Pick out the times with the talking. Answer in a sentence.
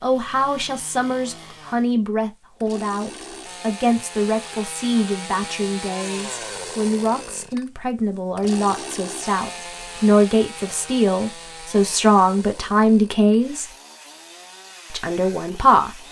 The talking can be heard from 0.0 to 13.7 s and from 14.9 to 16.0 s.